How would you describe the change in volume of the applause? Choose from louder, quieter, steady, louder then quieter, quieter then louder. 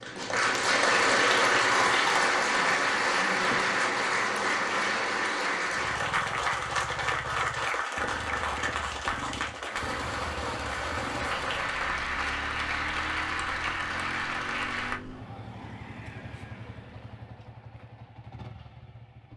quieter.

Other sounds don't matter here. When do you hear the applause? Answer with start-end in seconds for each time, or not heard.
0.0-15.0.